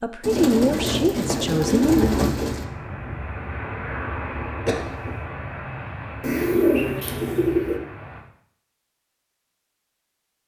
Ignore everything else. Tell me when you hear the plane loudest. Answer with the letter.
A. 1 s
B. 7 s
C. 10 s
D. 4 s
D.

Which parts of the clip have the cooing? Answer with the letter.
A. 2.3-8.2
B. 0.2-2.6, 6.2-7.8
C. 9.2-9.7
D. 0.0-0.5
B.